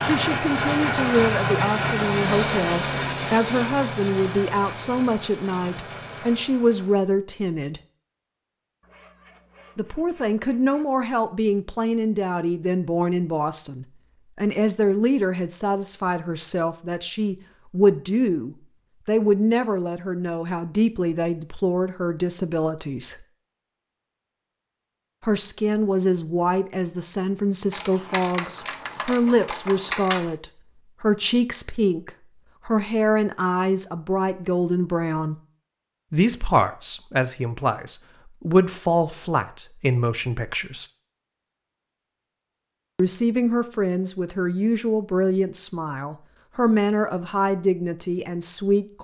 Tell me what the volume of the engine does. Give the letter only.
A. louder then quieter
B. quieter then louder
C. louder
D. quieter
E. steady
D.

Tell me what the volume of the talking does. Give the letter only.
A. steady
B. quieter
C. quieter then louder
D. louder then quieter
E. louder
A.